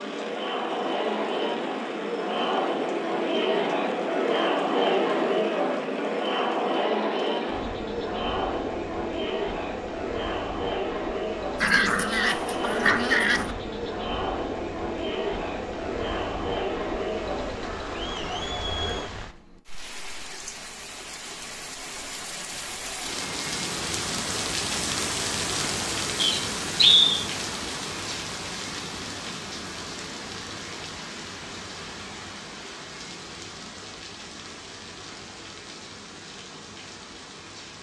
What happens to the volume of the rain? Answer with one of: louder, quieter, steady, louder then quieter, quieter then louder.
louder then quieter.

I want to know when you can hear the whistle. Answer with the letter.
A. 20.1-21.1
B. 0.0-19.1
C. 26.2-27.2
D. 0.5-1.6
C.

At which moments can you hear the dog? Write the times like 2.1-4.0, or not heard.
11.6-13.6.